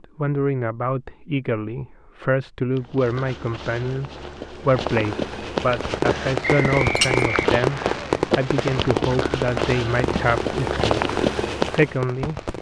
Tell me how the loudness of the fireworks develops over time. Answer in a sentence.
The volume of the fireworks goes down.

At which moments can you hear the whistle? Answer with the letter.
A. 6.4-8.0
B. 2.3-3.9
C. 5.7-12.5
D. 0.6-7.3
A.